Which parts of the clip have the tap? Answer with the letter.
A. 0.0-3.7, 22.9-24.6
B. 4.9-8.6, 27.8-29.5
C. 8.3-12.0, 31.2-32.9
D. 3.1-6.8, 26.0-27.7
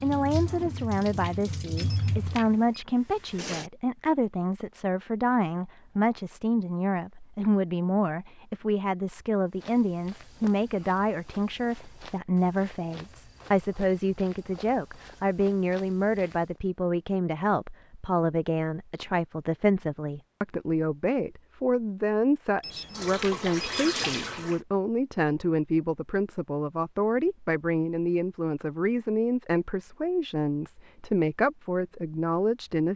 A.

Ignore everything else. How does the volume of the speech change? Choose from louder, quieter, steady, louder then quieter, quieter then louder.
steady.